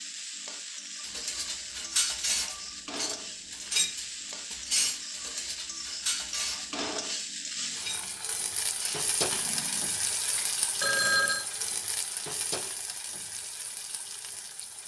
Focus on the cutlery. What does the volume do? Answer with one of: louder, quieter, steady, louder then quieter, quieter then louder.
quieter.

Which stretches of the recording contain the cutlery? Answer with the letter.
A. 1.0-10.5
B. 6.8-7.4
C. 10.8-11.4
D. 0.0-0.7
A.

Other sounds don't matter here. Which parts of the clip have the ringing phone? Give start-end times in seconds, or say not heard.
10.8-11.4.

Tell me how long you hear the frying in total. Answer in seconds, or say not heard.
15 s.